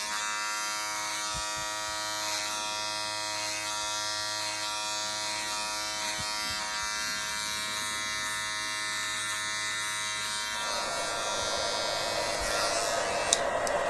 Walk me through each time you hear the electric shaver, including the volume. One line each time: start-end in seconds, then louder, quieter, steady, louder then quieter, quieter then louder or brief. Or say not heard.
0.0-13.8 steady.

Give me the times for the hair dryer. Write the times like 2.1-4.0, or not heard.
10.5-13.8.